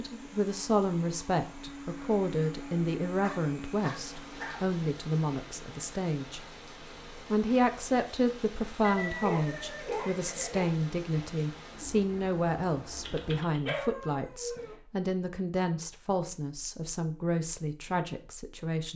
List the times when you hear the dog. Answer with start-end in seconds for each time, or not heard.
3.2-4.7, 8.8-10.8, 13.1-14.8.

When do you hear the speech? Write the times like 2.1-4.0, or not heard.
0.0-6.4, 7.2-18.9.